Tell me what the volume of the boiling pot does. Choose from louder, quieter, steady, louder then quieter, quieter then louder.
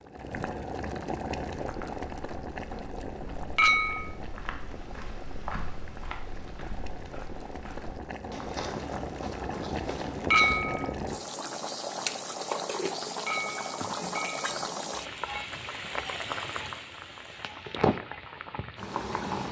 quieter then louder.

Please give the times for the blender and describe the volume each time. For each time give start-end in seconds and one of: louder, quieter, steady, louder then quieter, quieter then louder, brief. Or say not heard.
not heard.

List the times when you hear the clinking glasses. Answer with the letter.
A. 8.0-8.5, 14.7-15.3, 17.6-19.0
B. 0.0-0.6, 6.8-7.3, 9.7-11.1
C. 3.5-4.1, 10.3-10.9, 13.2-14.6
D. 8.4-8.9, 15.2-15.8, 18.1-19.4
C.